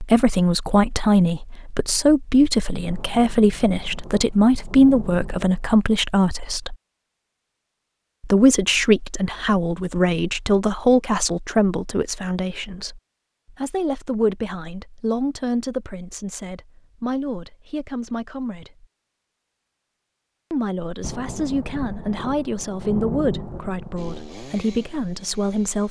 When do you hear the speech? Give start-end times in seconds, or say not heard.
0.0-6.8, 8.2-13.0, 13.6-18.9, 20.5-25.8.